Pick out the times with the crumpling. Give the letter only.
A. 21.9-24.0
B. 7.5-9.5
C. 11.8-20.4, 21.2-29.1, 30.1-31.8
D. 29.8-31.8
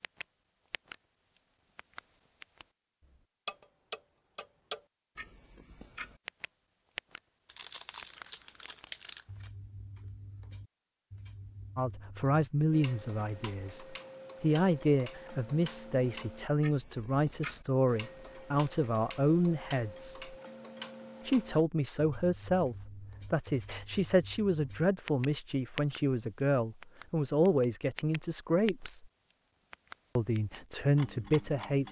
B.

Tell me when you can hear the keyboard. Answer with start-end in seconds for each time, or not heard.
not heard.